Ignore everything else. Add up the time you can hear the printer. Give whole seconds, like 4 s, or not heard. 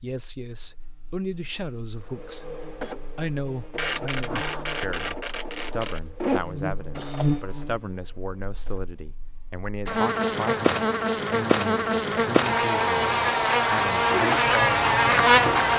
7 s.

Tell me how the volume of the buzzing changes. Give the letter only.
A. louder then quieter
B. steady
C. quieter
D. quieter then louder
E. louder
E.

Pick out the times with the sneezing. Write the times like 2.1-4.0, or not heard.
4.2-4.8.